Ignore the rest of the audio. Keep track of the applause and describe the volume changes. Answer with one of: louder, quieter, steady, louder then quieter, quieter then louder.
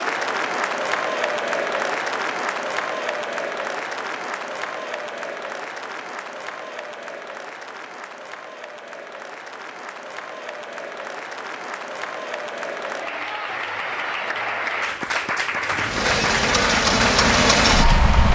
quieter then louder.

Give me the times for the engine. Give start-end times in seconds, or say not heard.
15.6-18.3.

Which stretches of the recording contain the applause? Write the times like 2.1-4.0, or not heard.
0.0-18.3.